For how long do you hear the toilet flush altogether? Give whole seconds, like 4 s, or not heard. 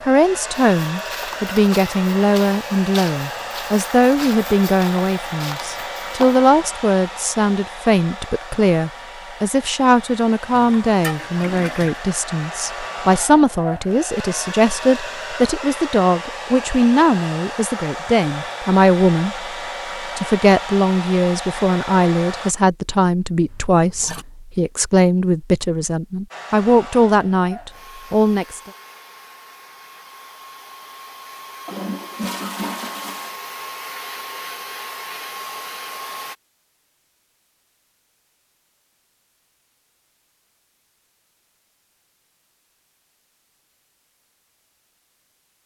4 s.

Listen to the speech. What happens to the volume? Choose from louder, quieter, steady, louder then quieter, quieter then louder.
steady.